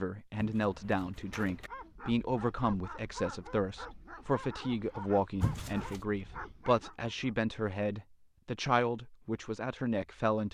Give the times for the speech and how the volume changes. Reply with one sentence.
The speech can be heard from 0.0 to 10.4 s, at a steady volume.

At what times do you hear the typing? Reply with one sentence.
The typing can't be heard in this clip.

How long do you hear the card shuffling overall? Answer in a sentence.
You can hear the card shuffling for 2 seconds altogether.